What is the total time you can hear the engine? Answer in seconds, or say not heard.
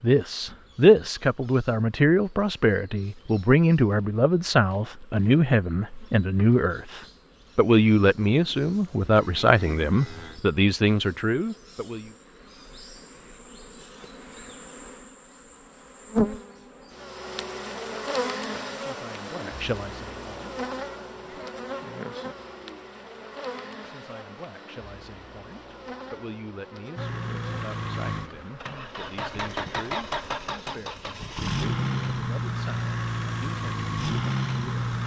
8 s.